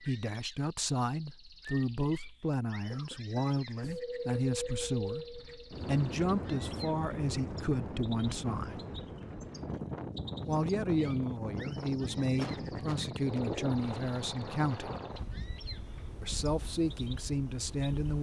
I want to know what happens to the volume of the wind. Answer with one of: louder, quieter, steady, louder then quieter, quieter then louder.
quieter.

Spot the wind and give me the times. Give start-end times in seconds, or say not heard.
3.8-18.1.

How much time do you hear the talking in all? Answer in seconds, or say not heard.
15 s.